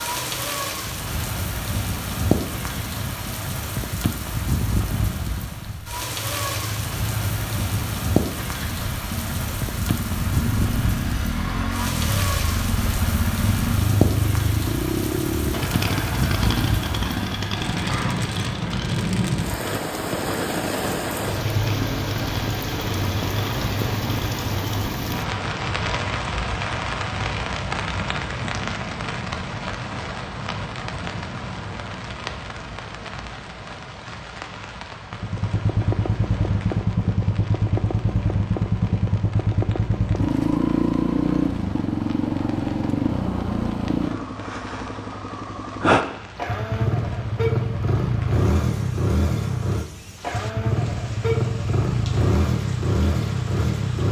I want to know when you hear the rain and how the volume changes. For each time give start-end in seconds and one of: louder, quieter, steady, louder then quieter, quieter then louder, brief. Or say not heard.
0.0-54.0 quieter.